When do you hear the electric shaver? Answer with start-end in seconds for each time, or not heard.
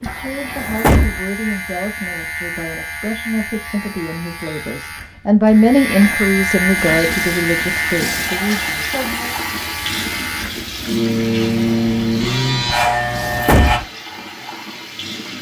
0.0-13.8.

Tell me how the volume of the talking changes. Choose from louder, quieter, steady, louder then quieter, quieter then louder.
louder then quieter.